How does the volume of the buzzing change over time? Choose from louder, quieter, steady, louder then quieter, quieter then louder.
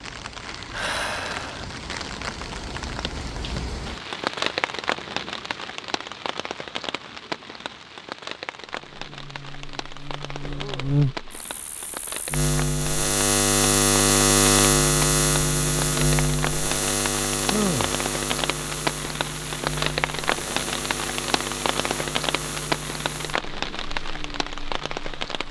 louder then quieter.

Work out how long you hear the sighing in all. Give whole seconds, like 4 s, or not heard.
2 s.